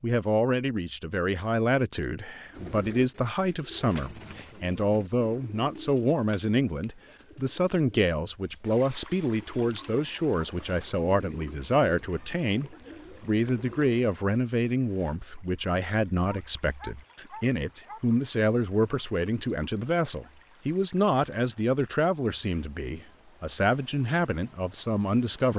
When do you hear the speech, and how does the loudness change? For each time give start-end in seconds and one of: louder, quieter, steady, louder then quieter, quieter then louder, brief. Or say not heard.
0.0-25.5 steady.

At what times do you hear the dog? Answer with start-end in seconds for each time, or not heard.
16.2-18.0.